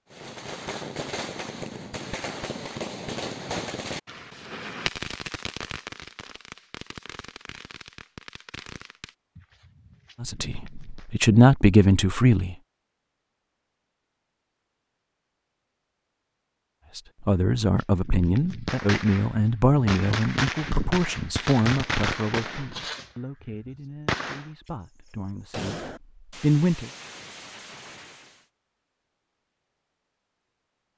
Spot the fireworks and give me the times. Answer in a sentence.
The fireworks can be heard from 0.1 to 11.1 s and from 17.6 to 28.4 s.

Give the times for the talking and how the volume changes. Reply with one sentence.
You can hear the talking briefly from 10.2 to 12.6 s; and from 16.9 to 26.9 s, getting quieter then louder.